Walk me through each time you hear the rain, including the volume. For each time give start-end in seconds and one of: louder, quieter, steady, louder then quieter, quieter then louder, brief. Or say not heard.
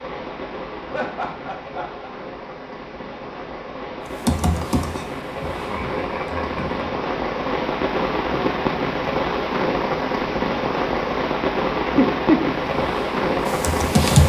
0.0-14.2 louder.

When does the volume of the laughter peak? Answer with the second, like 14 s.
12 s.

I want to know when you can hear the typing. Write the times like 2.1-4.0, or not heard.
4.0-6.9, 12.6-14.2.